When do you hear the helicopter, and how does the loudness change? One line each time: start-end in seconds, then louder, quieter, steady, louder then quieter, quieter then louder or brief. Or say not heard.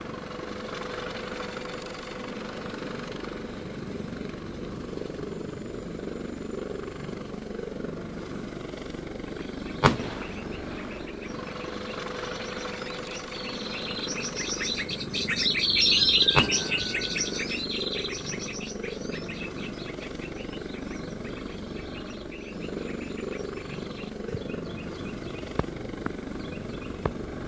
0.0-27.4 steady.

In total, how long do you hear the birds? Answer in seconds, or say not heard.
18 s.